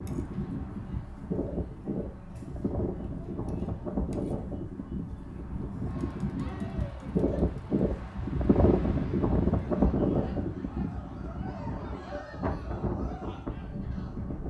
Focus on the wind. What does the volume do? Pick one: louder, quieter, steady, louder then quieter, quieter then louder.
louder then quieter.